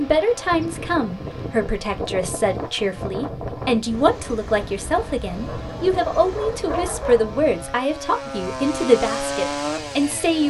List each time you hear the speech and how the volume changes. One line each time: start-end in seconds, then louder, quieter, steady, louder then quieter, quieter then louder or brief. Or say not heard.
0.0-10.4 steady.